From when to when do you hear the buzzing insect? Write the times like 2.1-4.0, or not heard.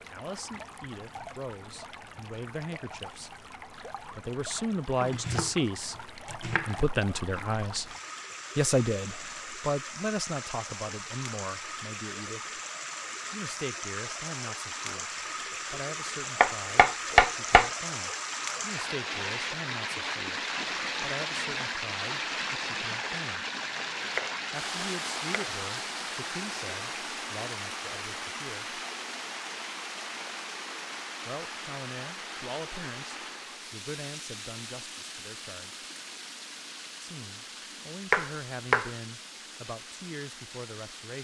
not heard.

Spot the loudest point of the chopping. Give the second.
17 s.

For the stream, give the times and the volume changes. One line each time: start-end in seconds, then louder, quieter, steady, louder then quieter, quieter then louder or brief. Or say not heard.
0.0-41.1 louder then quieter.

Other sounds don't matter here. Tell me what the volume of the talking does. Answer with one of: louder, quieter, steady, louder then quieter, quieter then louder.
quieter.